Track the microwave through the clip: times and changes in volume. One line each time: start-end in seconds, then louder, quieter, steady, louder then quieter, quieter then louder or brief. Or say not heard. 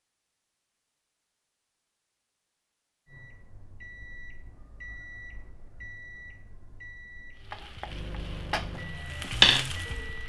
3.0-10.2 louder.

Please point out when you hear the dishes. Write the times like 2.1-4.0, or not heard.
not heard.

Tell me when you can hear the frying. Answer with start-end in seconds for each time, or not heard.
7.4-10.2.